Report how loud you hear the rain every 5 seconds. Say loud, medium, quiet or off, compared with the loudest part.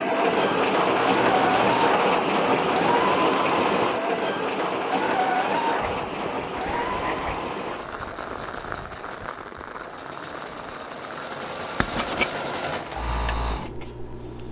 loud, medium, quiet.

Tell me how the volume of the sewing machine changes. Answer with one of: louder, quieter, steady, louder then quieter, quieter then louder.
quieter then louder.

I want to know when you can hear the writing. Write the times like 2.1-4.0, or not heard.
0.9-1.9, 5.8-7.8, 11.8-12.3.